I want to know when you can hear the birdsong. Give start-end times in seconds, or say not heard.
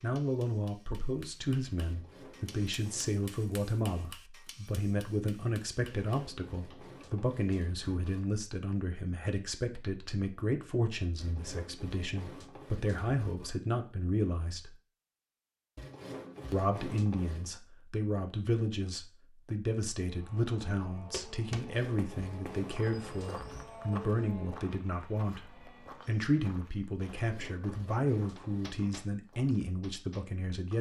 not heard.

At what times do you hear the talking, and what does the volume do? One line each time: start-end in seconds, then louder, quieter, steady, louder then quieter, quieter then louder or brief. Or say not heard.
0.0-14.7 steady
16.5-30.7 steady.